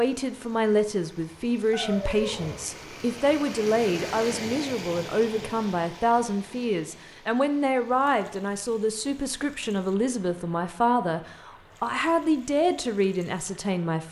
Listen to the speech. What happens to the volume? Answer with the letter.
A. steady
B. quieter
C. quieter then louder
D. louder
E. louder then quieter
A.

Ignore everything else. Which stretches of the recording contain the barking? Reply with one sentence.
The barking can be heard from 1.7 to 2.6 s.